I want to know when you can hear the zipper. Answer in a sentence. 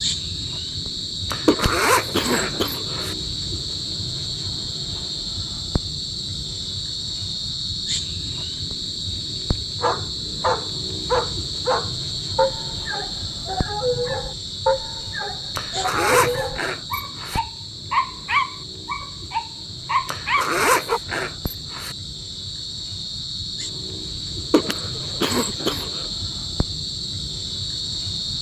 The zipper can be heard from 1.3 to 3.1 s, from 15.6 to 17.4 s and from 20.1 to 21.9 s.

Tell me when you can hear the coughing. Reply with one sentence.
The coughing can be heard from 1.4 to 3.0 s and from 24.5 to 26.1 s.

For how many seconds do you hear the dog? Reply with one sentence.
You can hear the dog for 11 seconds altogether.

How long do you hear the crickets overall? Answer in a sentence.
The crickets can be heard for 28 seconds in total.